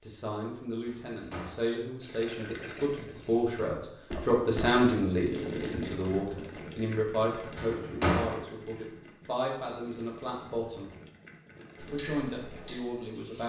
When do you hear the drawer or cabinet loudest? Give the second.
8 s.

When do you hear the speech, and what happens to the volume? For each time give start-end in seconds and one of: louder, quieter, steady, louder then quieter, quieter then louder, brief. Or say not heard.
0.0-10.9 louder then quieter
11.9-13.4 brief.